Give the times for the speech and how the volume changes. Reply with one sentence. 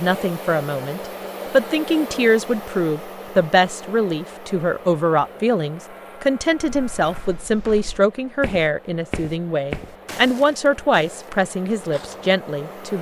You can hear the speech from 0.0 to 12.9 s, at a steady volume.